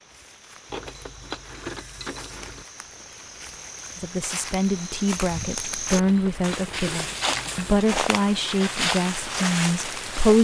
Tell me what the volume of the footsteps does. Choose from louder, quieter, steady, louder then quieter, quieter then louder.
louder.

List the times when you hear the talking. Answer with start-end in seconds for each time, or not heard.
4.0-10.3.